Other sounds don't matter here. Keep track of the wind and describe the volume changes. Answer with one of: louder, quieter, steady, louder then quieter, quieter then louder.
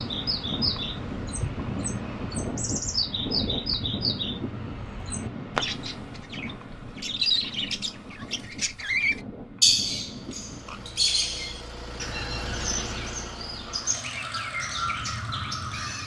quieter.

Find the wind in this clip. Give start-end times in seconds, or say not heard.
0.0-10.9.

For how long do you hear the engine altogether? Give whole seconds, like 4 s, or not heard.
6 s.